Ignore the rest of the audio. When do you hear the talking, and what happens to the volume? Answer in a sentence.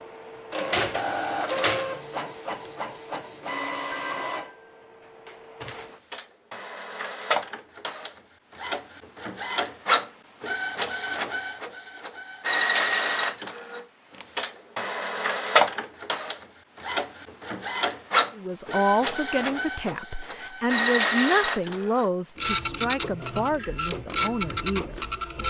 You can hear the talking from 18.4 to 25.4 s, getting quieter.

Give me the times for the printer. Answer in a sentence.
The printer can be heard from 0.0 to 25.4 s.